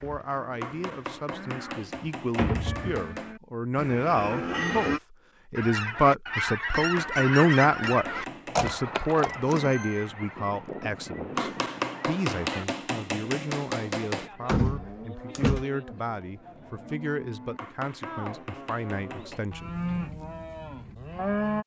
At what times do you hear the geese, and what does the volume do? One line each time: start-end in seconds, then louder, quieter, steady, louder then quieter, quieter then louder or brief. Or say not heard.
5.5-12.7 quieter.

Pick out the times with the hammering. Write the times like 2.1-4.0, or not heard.
0.6-3.4, 6.8-8.7, 11.3-14.3, 17.6-19.6.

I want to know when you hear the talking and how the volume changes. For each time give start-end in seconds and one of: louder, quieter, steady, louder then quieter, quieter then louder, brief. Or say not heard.
0.0-19.8 louder then quieter.